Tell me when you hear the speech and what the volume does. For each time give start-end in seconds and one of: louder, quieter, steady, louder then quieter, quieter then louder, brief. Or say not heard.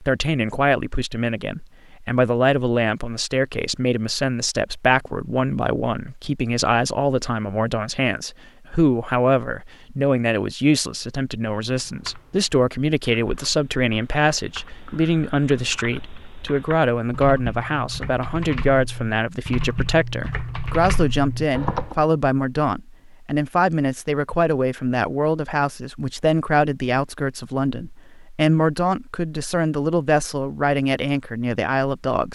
0.0-32.3 steady.